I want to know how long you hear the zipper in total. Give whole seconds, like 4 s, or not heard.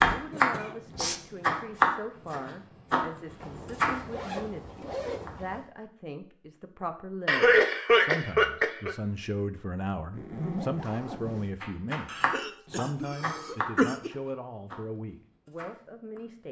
4 s.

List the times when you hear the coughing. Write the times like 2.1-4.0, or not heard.
0.3-1.2, 7.2-8.9, 12.1-14.1.